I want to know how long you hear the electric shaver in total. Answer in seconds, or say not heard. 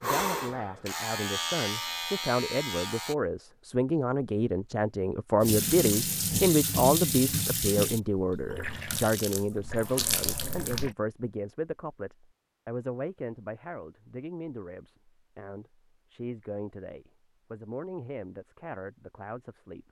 3 s.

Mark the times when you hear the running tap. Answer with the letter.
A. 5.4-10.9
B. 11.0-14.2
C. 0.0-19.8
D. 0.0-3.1
A.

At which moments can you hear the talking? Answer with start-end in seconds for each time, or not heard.
0.0-19.8.